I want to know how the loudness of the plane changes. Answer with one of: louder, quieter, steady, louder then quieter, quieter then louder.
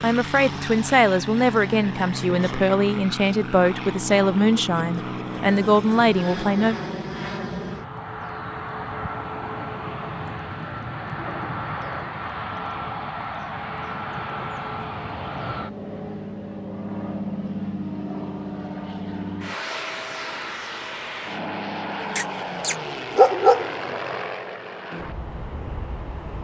steady.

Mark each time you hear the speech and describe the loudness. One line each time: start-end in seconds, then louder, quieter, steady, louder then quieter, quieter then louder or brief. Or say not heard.
0.0-6.8 steady.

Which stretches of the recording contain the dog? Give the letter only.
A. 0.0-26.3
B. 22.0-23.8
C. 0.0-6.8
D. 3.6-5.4
B.